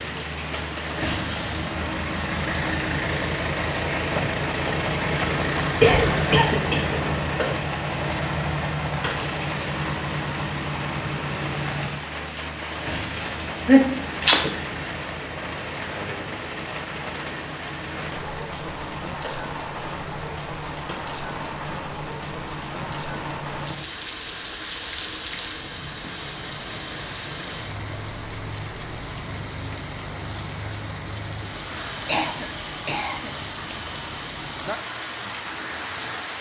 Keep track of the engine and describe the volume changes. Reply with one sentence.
The volume of the engine goes down.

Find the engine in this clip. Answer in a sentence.
The engine can be heard from 0.0 to 36.3 s.